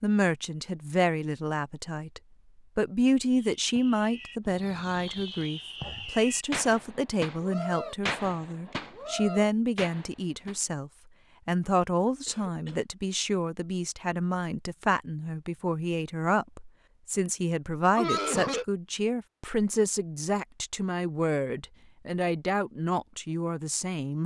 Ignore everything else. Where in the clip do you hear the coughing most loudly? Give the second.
18 s.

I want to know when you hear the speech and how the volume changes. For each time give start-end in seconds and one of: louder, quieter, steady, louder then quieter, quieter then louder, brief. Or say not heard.
0.0-24.2 steady.